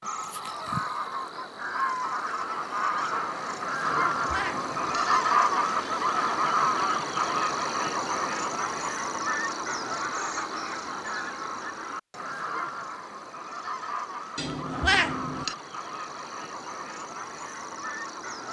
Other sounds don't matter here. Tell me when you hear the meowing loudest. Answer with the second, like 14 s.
15 s.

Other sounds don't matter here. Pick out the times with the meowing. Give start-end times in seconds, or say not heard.
3.9-5.2, 14.3-15.6.